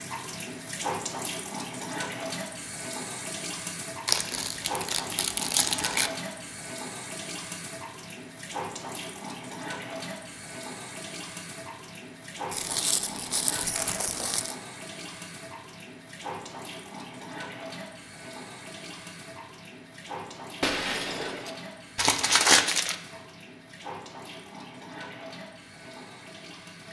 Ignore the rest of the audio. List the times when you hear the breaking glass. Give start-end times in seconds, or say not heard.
20.6-21.6.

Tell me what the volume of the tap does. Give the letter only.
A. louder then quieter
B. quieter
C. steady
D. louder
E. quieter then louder
B.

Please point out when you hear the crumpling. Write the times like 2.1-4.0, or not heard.
4.0-6.1, 12.5-14.6, 21.9-22.9.